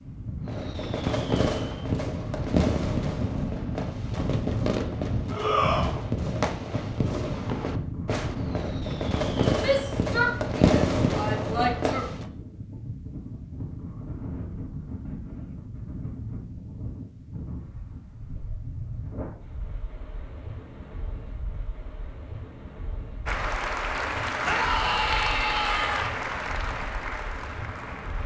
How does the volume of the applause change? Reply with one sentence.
The volume of the applause goes down.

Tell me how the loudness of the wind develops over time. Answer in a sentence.
The loudness of the wind goes down.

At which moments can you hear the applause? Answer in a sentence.
The applause can be heard from 23.2 to 28.2 s.